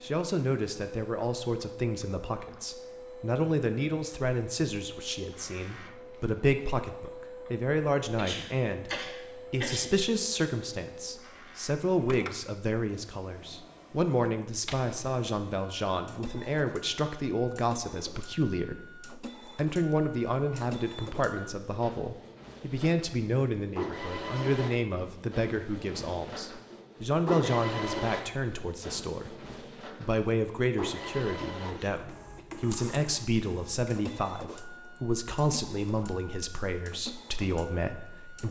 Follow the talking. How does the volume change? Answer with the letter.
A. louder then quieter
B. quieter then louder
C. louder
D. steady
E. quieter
D.